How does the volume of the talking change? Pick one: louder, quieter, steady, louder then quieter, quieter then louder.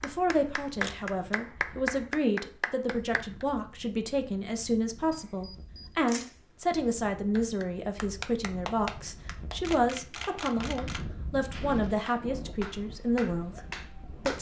steady.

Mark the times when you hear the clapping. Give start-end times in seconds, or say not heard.
0.0-3.5, 7.3-14.3.